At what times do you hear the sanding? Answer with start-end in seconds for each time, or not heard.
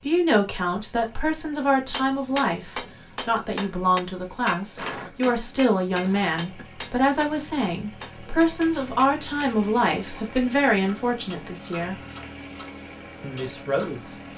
not heard.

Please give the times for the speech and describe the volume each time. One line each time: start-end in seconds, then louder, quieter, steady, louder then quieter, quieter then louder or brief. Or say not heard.
0.0-11.9 steady
13.2-14.3 brief.